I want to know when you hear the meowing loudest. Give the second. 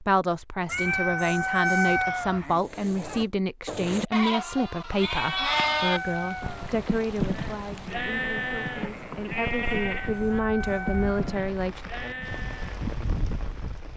2 s.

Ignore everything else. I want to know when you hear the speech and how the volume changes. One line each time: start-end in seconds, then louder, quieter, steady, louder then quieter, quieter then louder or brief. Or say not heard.
0.0-11.8 quieter then louder.